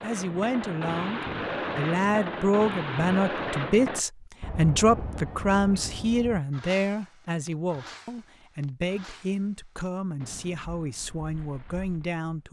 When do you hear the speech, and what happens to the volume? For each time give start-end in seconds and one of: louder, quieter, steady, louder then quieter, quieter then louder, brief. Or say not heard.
0.0-12.4 quieter.